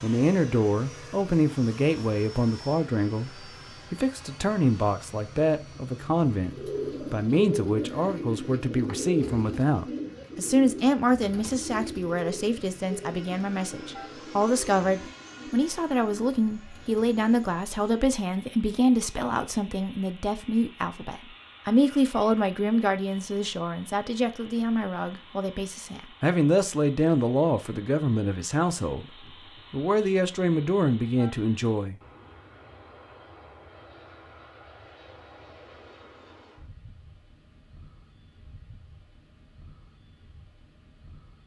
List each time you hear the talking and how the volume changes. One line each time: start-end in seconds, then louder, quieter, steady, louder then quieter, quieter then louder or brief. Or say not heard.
0.0-31.9 steady.